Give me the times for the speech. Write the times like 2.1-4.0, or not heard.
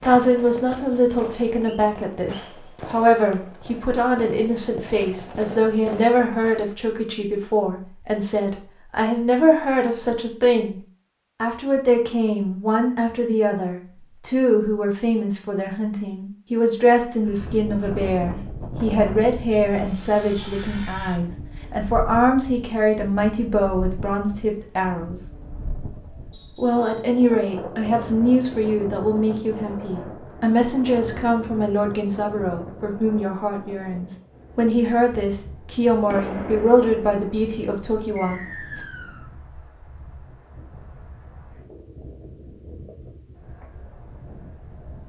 0.0-10.8, 11.4-25.2, 26.6-38.9.